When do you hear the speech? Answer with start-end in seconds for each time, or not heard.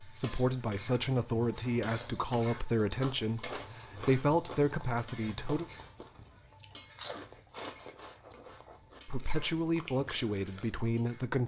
0.0-5.7, 9.1-11.4.